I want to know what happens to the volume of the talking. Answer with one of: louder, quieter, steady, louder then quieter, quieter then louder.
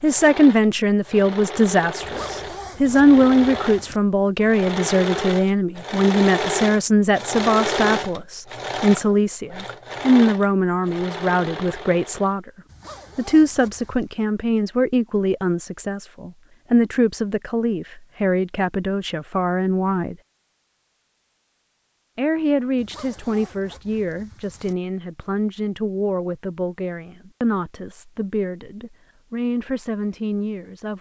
quieter.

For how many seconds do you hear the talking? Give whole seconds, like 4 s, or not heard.
28 s.